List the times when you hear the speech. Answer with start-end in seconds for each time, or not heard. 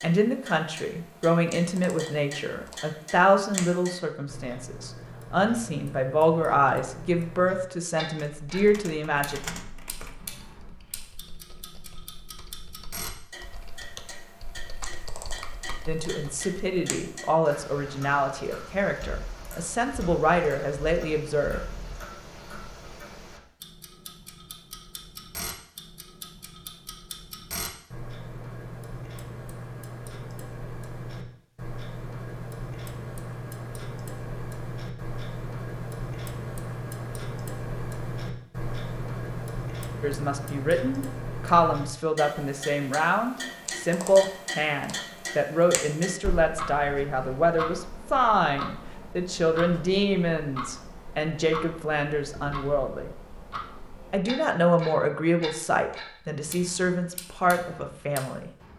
0.0-9.4, 15.8-21.6, 40.0-53.1, 54.1-58.5.